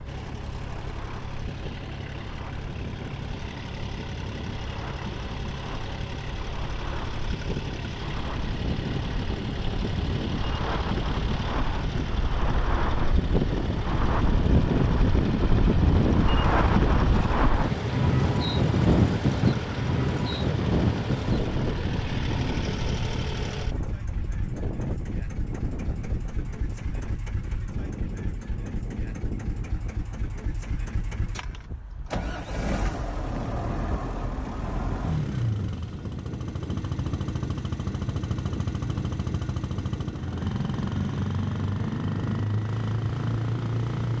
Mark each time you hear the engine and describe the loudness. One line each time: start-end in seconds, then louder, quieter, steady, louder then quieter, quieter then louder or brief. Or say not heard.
0.0-44.1 louder.